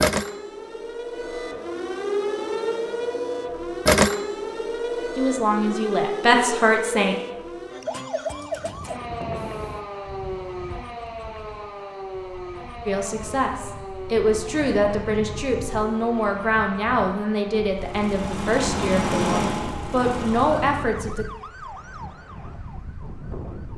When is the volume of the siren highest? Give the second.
4 s.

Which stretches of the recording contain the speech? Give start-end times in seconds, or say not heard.
5.2-7.2, 12.8-21.2.